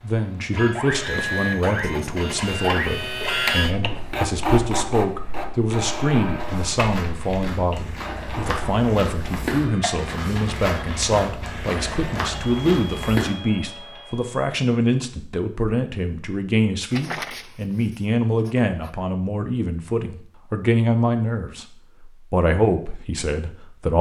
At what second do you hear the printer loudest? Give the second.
3 s.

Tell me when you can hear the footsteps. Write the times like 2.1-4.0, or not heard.
6.3-13.3.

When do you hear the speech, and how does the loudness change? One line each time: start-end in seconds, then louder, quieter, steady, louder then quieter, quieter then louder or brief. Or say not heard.
0.0-23.9 steady.